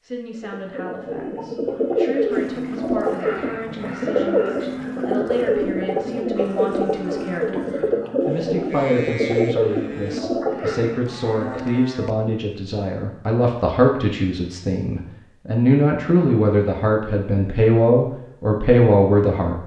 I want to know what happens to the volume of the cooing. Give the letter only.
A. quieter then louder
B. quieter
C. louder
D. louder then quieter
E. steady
E.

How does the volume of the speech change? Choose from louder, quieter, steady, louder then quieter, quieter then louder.
louder.